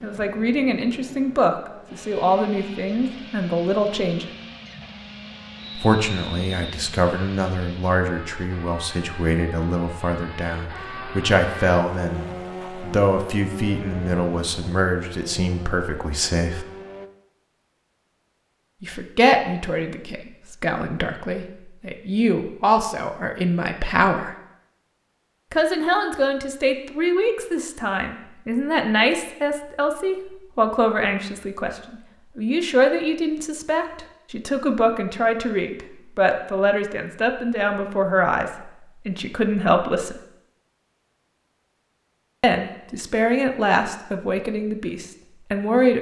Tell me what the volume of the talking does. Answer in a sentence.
The volume of the talking stays about the same.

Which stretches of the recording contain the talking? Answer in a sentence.
You can hear the talking from 0.0 to 4.2 s, from 5.8 to 16.6 s, from 18.8 to 24.4 s, from 25.5 to 40.2 s and from 42.4 to 45.9 s.